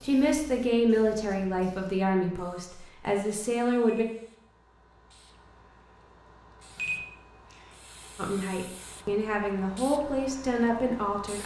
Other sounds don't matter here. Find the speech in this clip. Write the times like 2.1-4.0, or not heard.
0.0-4.0, 8.2-11.4.